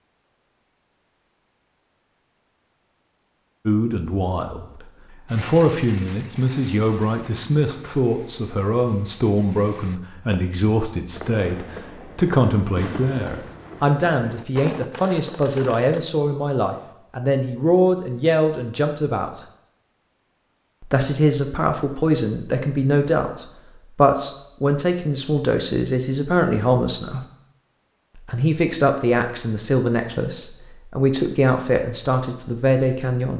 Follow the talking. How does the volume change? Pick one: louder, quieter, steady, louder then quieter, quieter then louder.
steady.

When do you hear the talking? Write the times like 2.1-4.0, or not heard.
3.6-19.4, 20.8-27.2, 28.1-33.3.